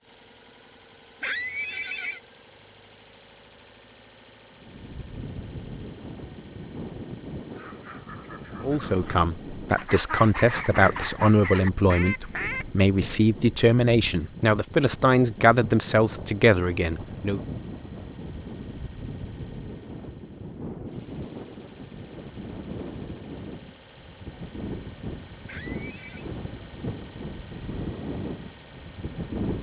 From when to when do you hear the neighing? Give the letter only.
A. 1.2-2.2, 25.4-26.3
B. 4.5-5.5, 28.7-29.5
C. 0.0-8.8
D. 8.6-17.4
A.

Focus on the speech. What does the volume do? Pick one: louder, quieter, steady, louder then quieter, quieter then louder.
steady.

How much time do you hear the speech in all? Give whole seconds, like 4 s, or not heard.
9 s.